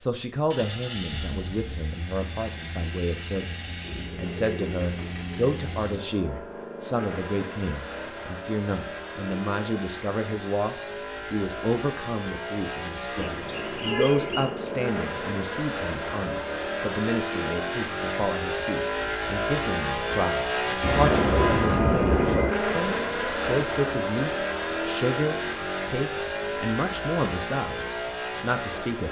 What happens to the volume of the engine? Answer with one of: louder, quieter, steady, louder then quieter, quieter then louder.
louder.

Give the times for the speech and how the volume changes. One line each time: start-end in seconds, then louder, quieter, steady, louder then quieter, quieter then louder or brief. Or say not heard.
0.0-29.0 steady.